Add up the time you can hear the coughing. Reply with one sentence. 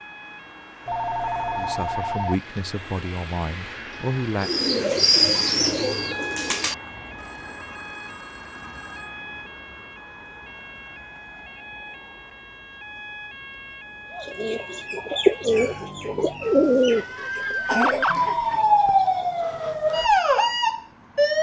The coughing can be heard for 2 seconds in total.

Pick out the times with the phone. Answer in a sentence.
You can hear the phone from 0.8 to 2.4 s, from 7.2 to 9.2 s and from 17.9 to 19.4 s.